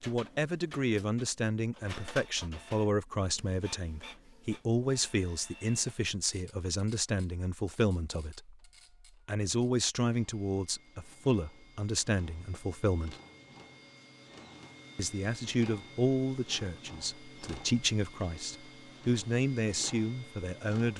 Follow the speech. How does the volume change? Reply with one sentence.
The volume of the speech stays about the same.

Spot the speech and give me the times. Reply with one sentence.
You can hear the speech from 0.0 to 8.6 s, from 9.2 to 13.2 s and from 14.9 to 20.9 s.